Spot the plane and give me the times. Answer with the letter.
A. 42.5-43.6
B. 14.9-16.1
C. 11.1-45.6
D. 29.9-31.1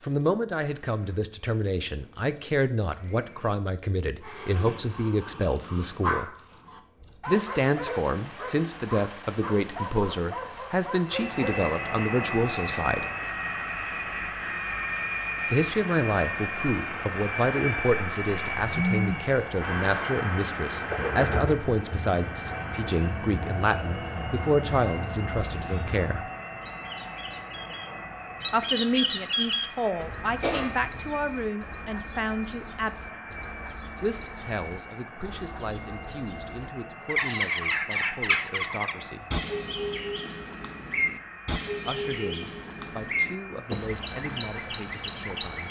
C.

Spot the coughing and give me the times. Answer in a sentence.
You can hear the coughing from 29.9 to 31.1 s.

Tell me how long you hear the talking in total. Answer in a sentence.
You can hear the talking for 37 seconds altogether.